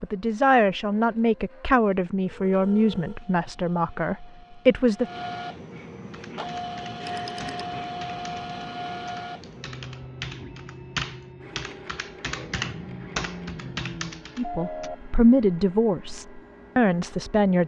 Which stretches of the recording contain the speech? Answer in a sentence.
The speech can be heard from 0.0 to 5.0 s and from 14.3 to 17.6 s.